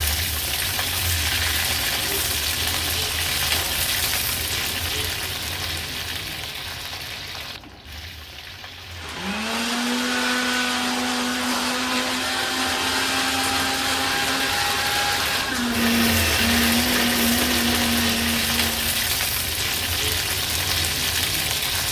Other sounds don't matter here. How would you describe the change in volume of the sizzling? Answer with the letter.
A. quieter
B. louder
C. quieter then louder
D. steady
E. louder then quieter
C.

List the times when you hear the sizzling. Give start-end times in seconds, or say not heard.
0.0-21.8.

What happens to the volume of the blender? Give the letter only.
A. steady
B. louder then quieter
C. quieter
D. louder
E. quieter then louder
A.